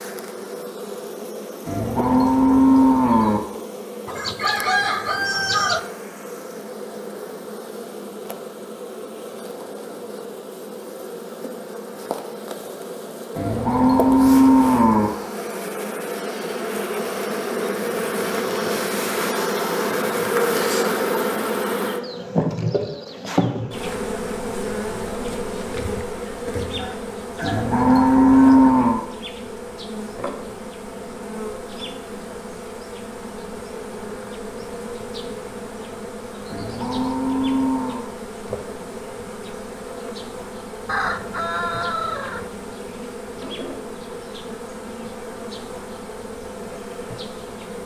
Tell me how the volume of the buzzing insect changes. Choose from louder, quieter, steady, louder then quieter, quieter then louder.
louder then quieter.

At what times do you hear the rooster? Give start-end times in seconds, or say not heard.
4.0-5.8, 26.8-28.6, 40.9-42.5.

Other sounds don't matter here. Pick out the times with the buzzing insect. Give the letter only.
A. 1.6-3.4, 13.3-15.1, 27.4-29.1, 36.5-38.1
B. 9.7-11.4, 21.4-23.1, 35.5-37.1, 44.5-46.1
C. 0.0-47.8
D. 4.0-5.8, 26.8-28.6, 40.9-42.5
C.